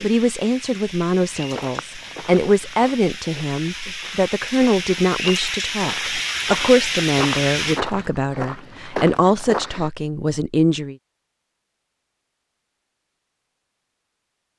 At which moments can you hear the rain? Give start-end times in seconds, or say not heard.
0.0-7.8.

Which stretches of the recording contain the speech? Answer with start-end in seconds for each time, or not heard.
0.0-10.9.